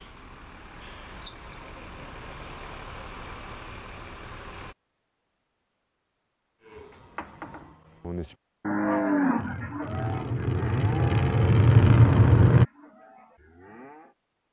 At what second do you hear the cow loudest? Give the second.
9 s.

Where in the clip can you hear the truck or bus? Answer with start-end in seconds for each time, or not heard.
0.0-4.8, 9.3-12.7.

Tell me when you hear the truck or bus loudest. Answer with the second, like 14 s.
12 s.